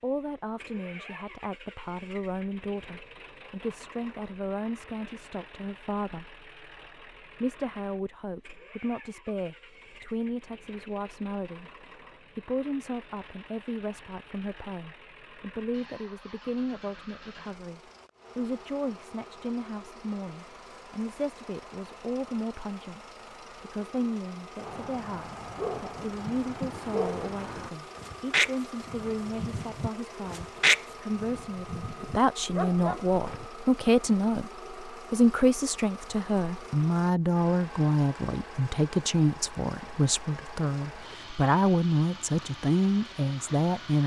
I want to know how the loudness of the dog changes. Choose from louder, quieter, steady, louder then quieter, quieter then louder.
louder then quieter.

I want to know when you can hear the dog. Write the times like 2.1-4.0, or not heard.
24.6-33.5.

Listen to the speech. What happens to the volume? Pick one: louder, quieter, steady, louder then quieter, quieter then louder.
louder.